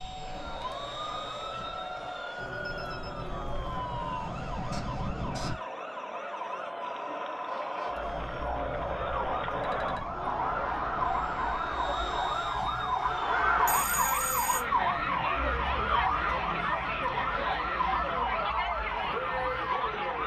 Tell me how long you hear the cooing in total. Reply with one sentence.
You can't hear the cooing here.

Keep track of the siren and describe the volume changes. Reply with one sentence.
The loudness of the siren goes up.